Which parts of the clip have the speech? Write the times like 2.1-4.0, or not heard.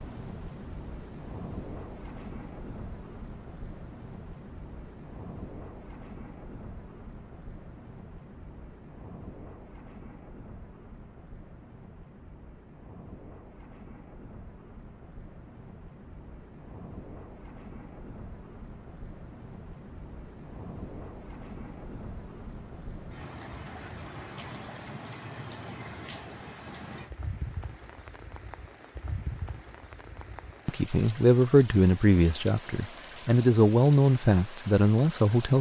30.6-35.5.